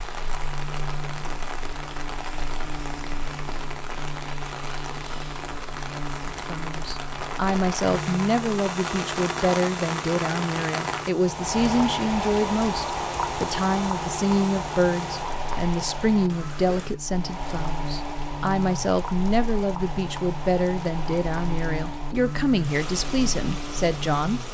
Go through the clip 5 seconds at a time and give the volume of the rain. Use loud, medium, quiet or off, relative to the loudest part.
medium, loud, loud, medium, medium.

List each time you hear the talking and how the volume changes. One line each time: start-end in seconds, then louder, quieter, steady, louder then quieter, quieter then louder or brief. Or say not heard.
6.5-24.4 steady.